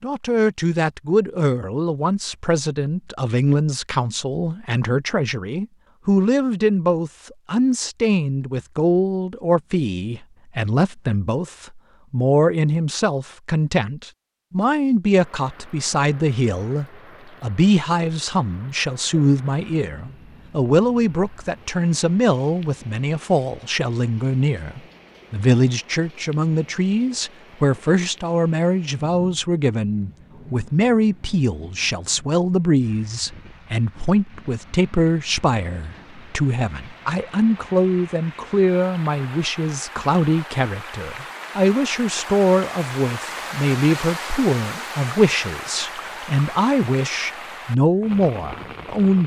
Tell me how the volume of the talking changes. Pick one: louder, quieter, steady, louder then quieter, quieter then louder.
steady.